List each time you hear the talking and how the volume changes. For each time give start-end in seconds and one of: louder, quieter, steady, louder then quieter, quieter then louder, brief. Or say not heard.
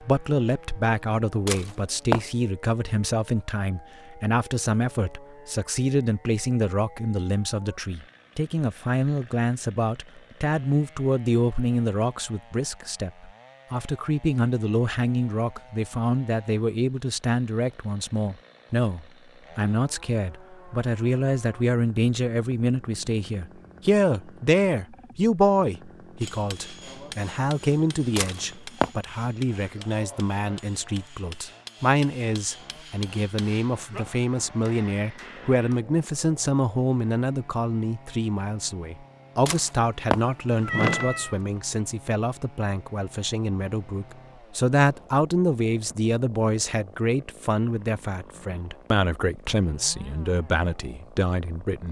0.0-51.8 steady.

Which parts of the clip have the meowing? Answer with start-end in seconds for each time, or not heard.
1.4-2.2, 28.1-28.9, 39.5-41.4.